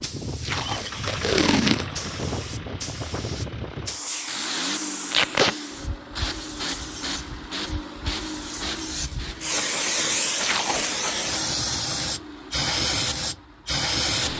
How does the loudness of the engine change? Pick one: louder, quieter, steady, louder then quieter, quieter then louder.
quieter.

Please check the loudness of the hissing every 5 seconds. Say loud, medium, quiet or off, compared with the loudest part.
medium, medium, loud.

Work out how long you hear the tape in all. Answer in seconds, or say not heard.
3 s.